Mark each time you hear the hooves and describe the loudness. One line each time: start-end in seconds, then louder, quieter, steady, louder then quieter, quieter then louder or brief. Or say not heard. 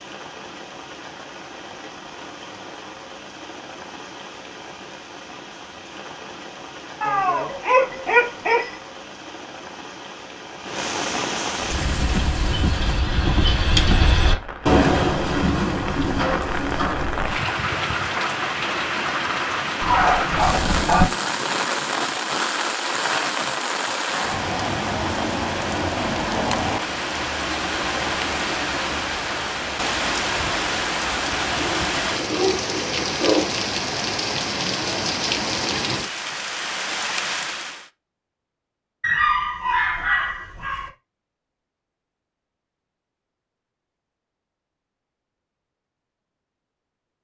11.7-17.3 louder then quieter.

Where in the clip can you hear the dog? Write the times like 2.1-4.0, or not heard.
7.0-8.8, 19.8-21.1, 31.6-33.5, 39.0-40.9.